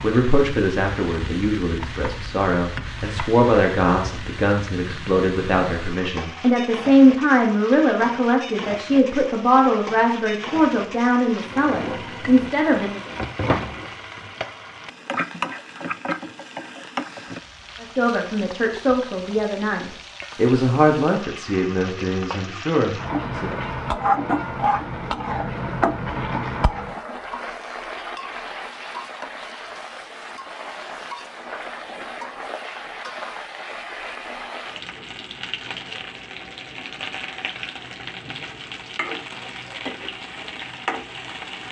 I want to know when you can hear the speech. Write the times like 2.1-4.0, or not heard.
0.0-13.0, 17.8-23.6.